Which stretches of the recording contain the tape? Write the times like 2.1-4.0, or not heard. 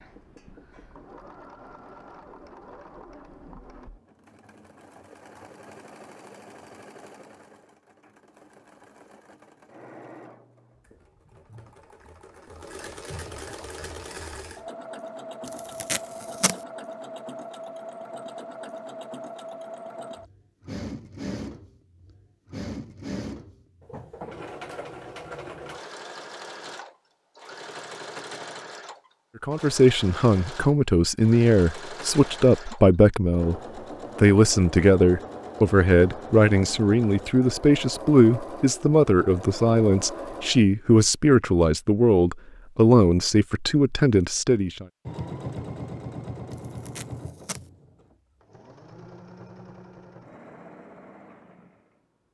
15.4-16.6, 46.5-47.6.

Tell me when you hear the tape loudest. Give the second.
16 s.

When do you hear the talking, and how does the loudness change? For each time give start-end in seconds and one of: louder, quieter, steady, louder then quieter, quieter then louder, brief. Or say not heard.
29.4-44.9 steady.